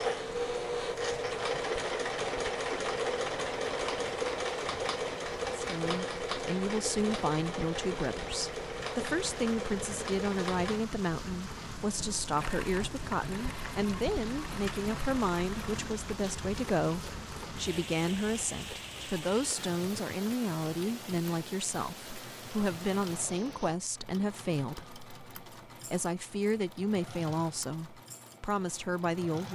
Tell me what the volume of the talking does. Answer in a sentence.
The volume of the talking stays about the same.